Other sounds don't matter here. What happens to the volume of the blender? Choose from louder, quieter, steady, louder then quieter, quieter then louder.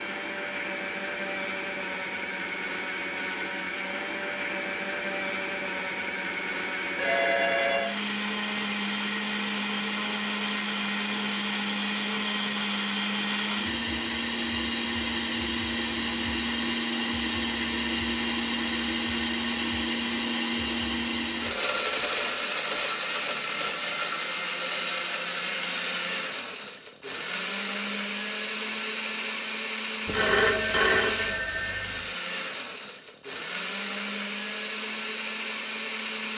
steady.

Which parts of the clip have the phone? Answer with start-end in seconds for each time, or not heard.
7.0-8.0, 30.1-32.0.